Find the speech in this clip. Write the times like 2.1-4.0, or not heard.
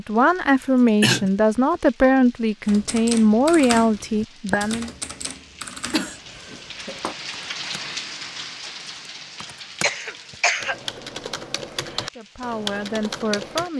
0.0-4.9, 12.2-13.7.